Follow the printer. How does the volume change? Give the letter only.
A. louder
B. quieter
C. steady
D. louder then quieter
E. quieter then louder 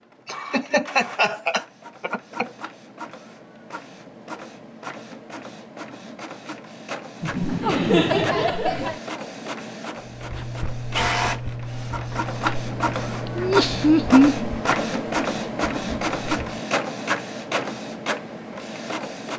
A.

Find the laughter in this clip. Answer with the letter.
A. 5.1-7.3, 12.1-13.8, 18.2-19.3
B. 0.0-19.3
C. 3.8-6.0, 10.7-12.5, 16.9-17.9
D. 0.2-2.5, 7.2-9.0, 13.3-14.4
D.